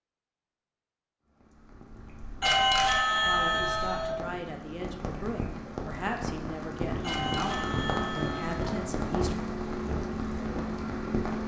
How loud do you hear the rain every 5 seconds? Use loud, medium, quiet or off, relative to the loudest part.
quiet, loud, loud.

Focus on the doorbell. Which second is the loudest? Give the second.
3 s.